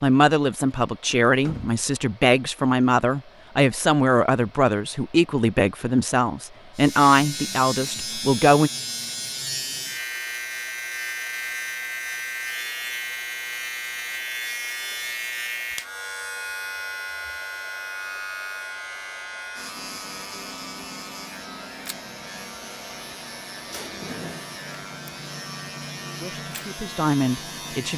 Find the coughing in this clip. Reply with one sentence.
You can't hear the coughing here.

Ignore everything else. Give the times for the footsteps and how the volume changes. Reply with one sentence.
The footsteps can't be heard in this clip.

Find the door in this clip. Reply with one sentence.
The door can be heard from 1.4 to 1.9 s and from 23.7 to 24.4 s.